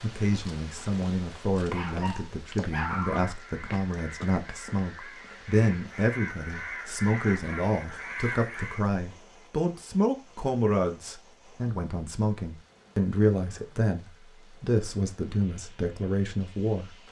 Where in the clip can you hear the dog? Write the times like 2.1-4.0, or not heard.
1.7-3.3.